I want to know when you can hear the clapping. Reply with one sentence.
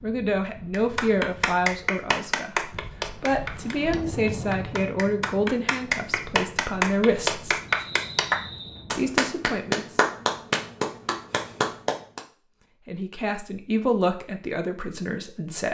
You can hear the clapping from 0.7 to 12.2 s.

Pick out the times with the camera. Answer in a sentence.
The camera can't be heard in this clip.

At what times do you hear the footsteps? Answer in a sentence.
The footsteps can't be heard in this clip.